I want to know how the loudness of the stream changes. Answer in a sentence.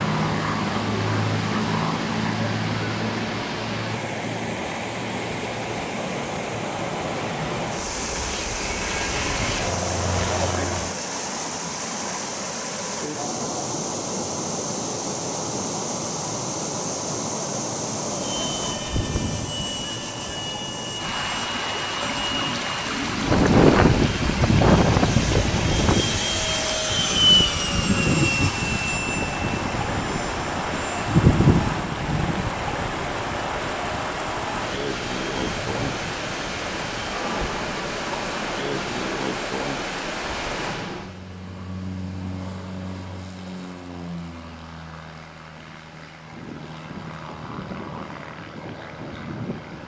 The volume of the stream goes down.